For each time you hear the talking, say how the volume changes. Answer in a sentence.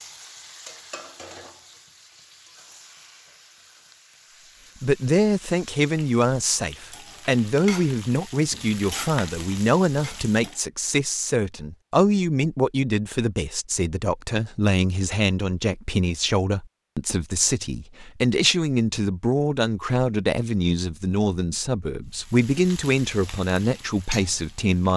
You can hear the talking from 4.8 to 24.9 s, at a steady volume.